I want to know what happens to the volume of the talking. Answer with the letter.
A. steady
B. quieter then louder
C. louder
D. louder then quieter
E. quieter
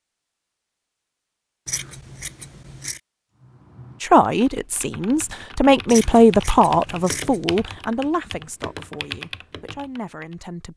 D.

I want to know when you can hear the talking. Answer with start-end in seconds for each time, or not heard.
4.0-10.7.